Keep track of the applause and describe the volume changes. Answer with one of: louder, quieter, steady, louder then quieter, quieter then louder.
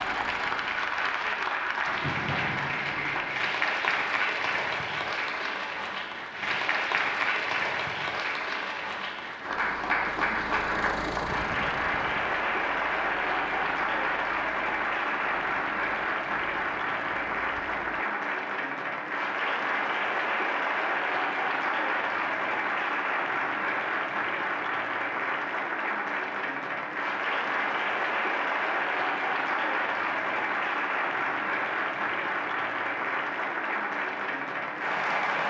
steady.